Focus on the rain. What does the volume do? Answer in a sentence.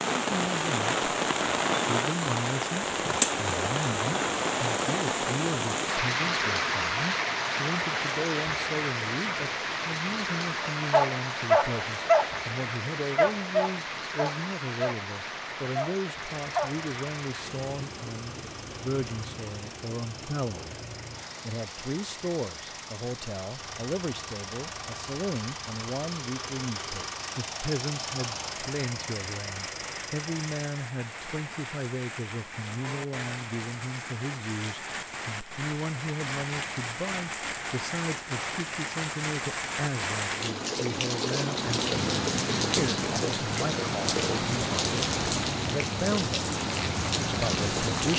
The loudness of the rain goes down, then up.